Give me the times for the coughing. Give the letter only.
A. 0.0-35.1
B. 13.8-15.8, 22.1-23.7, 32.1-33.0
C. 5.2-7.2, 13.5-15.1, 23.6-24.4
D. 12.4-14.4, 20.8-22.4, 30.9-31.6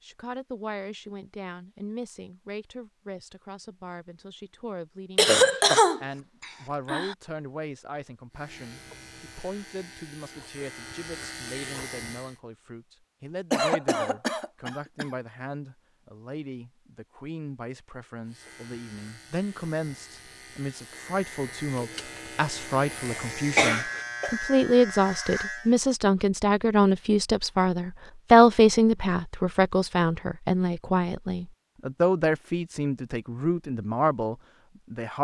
C.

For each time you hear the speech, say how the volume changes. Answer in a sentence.
You can hear the speech from 0.0 to 35.1 s, getting louder.